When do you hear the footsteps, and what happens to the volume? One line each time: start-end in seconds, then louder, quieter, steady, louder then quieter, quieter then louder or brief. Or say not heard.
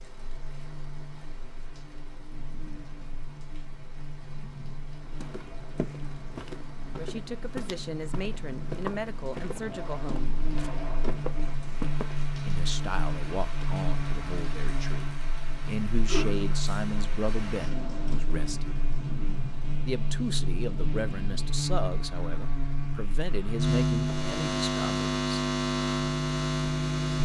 5.0-12.2 steady.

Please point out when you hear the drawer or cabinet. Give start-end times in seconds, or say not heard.
9.6-11.6, 17.6-18.2.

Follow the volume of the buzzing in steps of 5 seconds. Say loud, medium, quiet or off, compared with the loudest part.
quiet, quiet, medium, medium, loud, loud.